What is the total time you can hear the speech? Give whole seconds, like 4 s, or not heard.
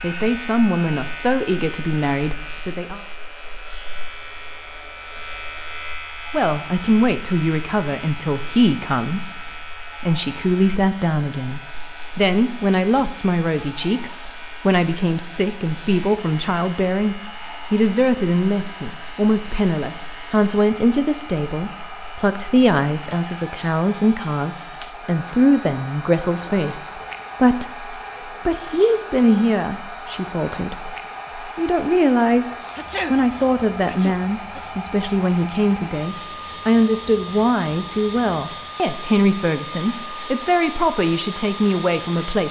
39 s.